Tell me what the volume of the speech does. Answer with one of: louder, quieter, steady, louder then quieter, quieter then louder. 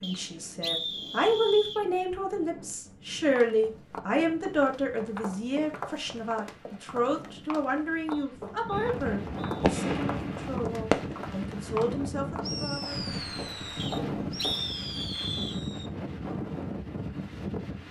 quieter.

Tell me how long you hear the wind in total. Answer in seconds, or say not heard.
18 s.